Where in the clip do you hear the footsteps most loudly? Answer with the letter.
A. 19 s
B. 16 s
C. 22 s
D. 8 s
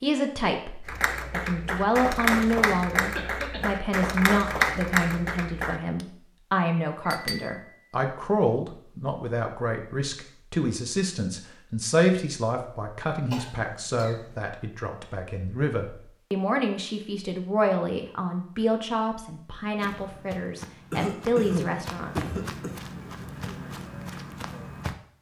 C.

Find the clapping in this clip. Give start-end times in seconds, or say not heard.
0.8-6.0.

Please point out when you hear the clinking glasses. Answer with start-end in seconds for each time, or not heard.
7.0-7.8.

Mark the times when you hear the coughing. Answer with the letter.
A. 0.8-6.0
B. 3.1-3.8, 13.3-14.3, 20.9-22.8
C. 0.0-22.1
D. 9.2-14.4
B.